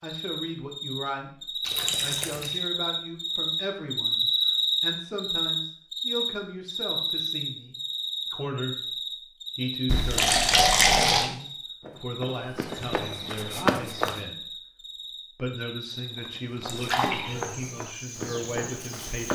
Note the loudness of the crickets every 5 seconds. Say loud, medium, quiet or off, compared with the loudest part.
loud, loud, quiet, quiet.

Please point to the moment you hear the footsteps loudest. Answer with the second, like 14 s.
14 s.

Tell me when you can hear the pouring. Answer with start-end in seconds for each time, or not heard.
1.6-2.5, 9.8-11.2, 16.6-17.6.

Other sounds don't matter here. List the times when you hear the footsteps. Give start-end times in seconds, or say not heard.
11.8-14.2, 16.1-19.2.